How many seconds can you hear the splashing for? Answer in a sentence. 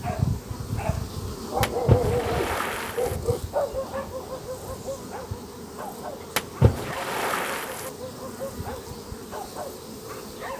The splashing can be heard for 3 seconds in total.